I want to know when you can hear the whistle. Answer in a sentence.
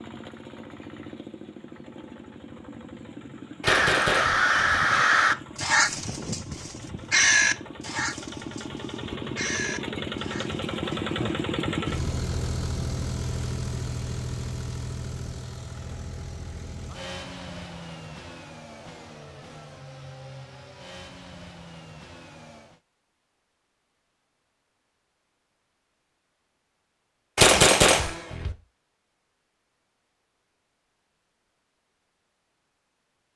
The whistle can't be heard in this clip.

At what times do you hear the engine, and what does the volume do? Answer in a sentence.
The engine can be heard from 0.0 to 22.8 s, getting louder then quieter.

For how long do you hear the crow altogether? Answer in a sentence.
You can hear the crow for 8 seconds altogether.